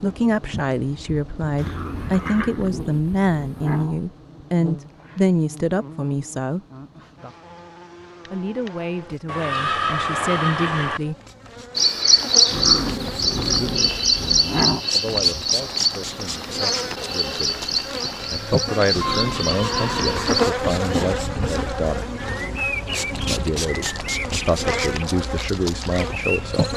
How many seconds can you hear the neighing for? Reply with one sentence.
You can hear the neighing for 4 seconds altogether.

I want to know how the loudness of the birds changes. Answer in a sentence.
The loudness of the birds goes down.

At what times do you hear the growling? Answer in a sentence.
You can hear the growling from 1.6 to 4.0 s, from 12.5 to 14.8 s and from 18.9 to 21.2 s.